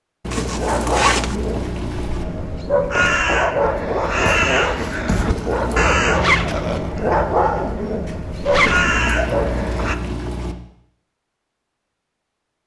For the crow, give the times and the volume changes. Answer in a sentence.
You can hear the crow from 2.2 to 9.9 s, getting quieter then louder.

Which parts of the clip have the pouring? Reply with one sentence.
The pouring can be heard from 0.2 to 2.2 s, from 5.2 to 6.0 s and from 8.5 to 10.6 s.